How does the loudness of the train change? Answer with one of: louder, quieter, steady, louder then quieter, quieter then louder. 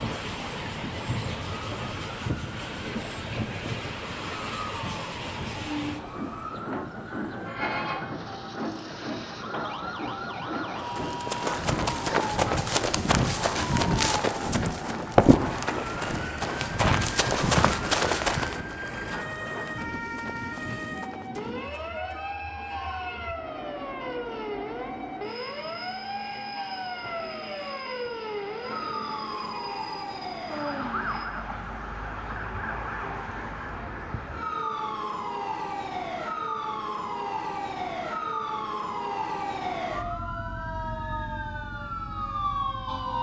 quieter.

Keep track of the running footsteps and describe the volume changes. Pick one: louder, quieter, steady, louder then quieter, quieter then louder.
quieter.